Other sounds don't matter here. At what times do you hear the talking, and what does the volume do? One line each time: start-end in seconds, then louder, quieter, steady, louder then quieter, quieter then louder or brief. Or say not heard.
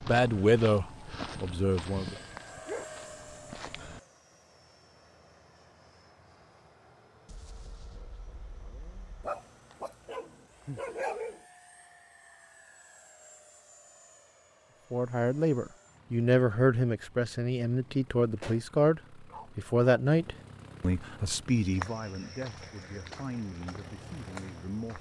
0.1-2.1 brief
14.9-24.9 quieter.